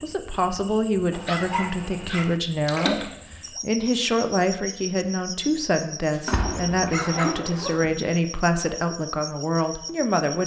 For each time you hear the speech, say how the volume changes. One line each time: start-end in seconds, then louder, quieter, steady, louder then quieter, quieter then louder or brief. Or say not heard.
0.0-10.4 steady.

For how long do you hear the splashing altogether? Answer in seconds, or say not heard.
2 s.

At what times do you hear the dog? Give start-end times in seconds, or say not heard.
1.1-2.4, 6.1-7.8.